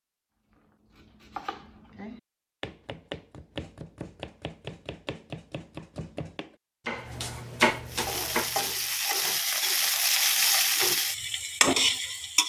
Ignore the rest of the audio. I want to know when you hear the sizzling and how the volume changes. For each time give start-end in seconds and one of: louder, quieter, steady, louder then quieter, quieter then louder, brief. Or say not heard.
7.8-12.4 louder.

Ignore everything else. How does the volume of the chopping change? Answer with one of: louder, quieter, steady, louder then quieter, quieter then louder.
louder.